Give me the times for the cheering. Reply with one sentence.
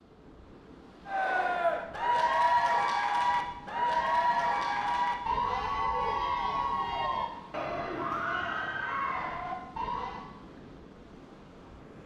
You can hear the cheering from 1.1 to 10.2 s.